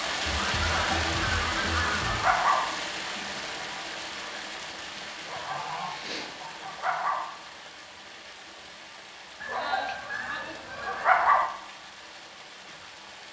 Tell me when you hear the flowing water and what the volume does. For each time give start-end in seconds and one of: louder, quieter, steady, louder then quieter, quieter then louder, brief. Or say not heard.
0.0-13.2 quieter.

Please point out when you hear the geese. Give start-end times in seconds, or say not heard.
0.2-2.2, 5.3-7.0, 9.4-11.4.